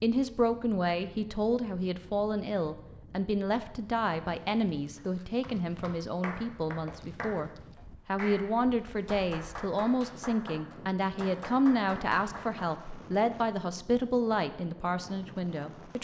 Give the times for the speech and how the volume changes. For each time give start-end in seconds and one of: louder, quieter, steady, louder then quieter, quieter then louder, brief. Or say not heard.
0.0-15.9 steady.